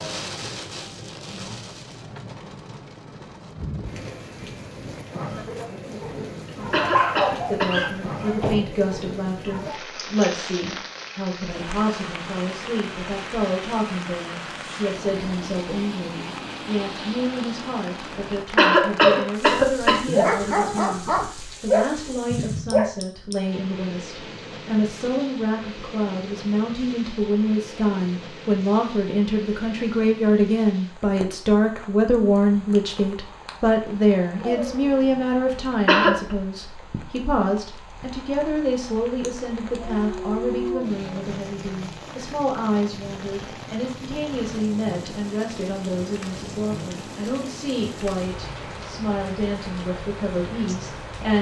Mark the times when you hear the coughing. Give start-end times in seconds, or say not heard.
6.5-7.8, 18.3-20.1, 35.9-36.4.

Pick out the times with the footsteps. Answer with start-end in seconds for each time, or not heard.
not heard.